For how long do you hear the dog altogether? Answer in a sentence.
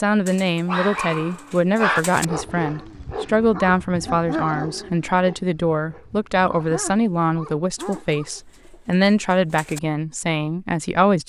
You can hear the dog for 8 seconds altogether.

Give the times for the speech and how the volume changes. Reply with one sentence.
The speech can be heard from 0.0 to 11.2 s, at a steady volume.